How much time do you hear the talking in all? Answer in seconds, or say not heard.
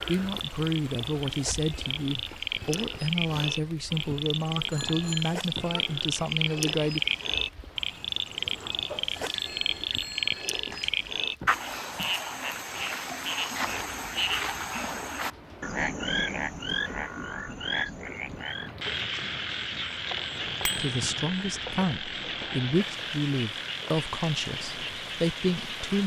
12 s.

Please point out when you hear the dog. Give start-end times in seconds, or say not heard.
not heard.